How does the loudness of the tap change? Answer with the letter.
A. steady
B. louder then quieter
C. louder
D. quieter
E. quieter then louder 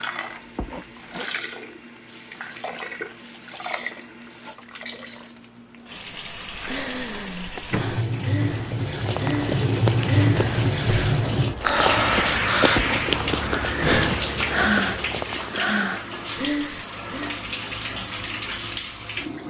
B.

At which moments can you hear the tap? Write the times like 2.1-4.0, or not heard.
0.0-19.4.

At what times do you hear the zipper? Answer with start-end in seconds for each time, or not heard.
0.3-1.3, 12.6-13.1.